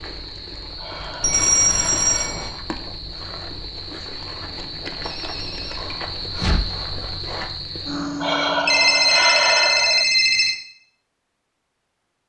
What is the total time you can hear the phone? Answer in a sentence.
You can hear the phone for 5 seconds altogether.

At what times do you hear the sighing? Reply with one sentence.
The sighing can be heard from 0.8 to 2.5 s and from 8.2 to 10.1 s.